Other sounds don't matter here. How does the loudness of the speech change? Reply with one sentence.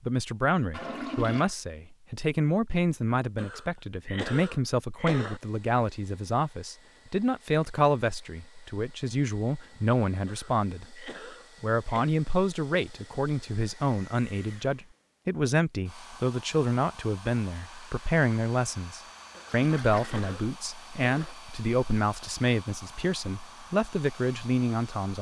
The loudness of the speech stays about the same.